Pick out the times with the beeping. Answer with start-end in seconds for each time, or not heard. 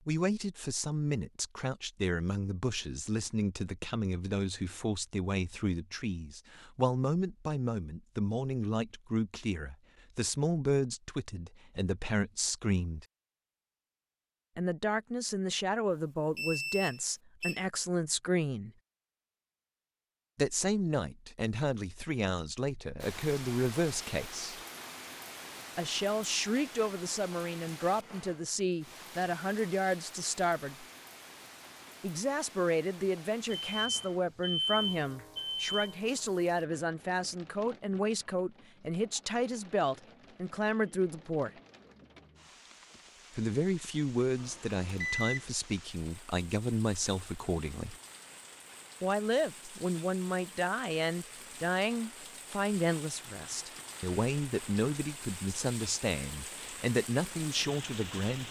16.4-17.6, 33.5-35.7, 44.4-45.5.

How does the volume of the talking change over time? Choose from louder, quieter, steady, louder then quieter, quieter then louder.
steady.